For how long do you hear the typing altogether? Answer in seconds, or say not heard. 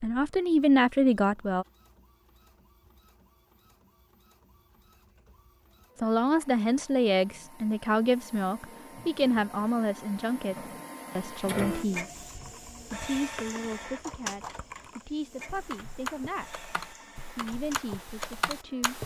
7 s.